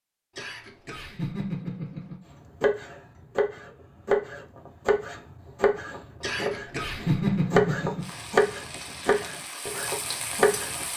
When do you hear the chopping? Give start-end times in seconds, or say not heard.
2.6-10.8.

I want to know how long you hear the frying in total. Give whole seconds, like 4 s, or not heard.
3 s.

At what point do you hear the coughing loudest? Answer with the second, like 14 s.
7 s.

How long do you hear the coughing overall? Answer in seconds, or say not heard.
4 s.